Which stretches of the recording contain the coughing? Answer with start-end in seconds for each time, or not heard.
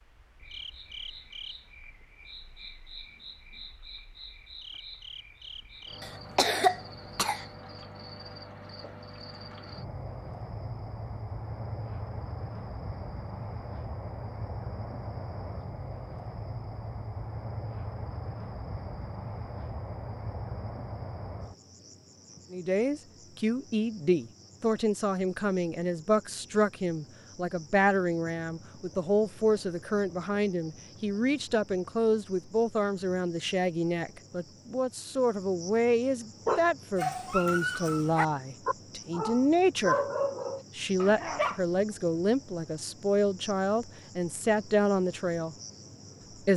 6.0-7.5.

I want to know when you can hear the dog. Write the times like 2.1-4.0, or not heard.
36.5-41.6.